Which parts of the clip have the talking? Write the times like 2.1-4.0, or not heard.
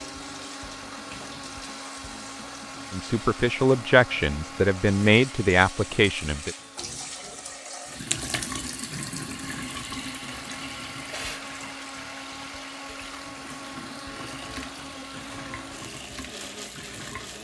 2.9-6.5.